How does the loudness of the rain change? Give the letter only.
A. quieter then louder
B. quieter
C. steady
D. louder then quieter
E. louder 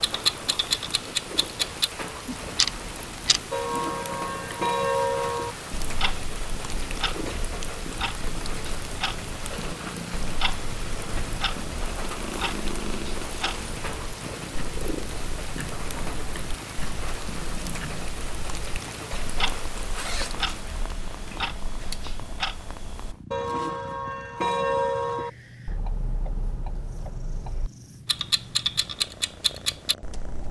C.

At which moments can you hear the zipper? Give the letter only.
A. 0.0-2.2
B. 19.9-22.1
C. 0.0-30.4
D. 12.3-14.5
B.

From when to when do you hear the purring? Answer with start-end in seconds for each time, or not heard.
0.0-30.4.